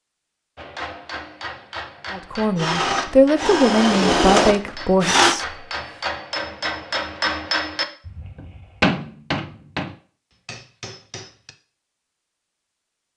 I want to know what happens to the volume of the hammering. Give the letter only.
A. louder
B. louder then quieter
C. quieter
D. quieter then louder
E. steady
B.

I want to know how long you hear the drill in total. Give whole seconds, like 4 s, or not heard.
3 s.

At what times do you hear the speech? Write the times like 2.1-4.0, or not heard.
2.1-5.5.